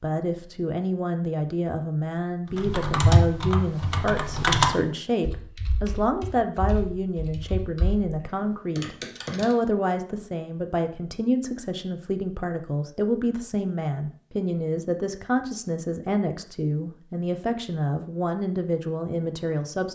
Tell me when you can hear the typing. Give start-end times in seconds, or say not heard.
2.5-9.6.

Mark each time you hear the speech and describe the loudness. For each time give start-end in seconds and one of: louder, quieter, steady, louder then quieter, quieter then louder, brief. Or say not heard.
0.0-19.8 steady.